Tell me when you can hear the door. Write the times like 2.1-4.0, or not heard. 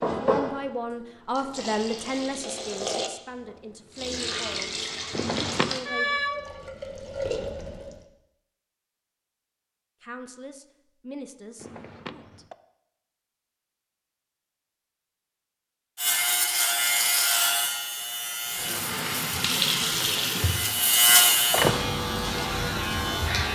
5.1-5.8, 11.6-12.6, 20.6-21.9.